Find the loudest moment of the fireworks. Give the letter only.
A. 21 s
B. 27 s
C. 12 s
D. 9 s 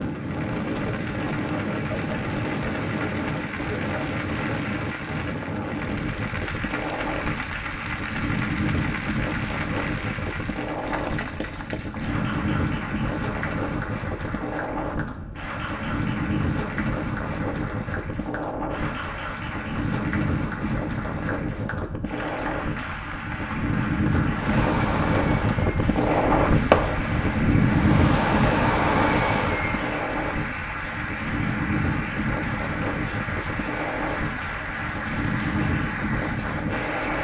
B.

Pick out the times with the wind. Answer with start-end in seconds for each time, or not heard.
0.0-37.1.